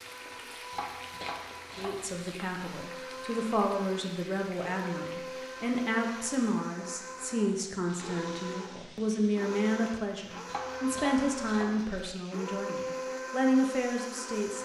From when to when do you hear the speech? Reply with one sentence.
The speech can be heard from 1.8 to 14.6 s.